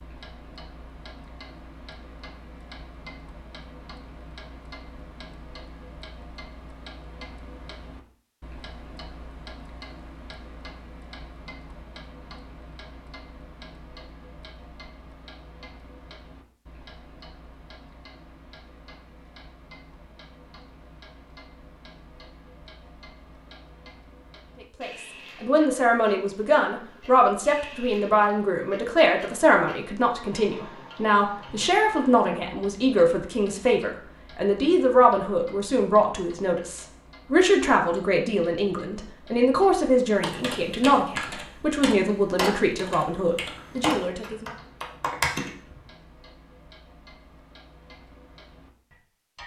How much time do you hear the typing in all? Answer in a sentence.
The typing can be heard for 6 seconds in total.